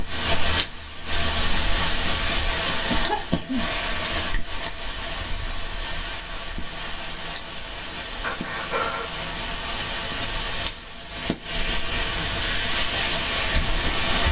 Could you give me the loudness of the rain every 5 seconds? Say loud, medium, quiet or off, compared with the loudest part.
loud, medium, loud.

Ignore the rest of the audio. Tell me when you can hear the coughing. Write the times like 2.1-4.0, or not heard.
2.9-3.8, 8.2-9.2.